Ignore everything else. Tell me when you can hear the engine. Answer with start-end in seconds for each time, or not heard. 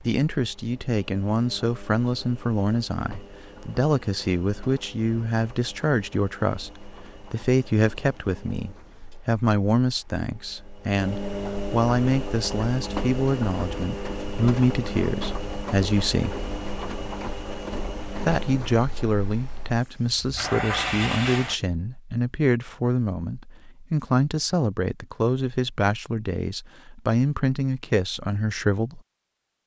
0.0-21.6.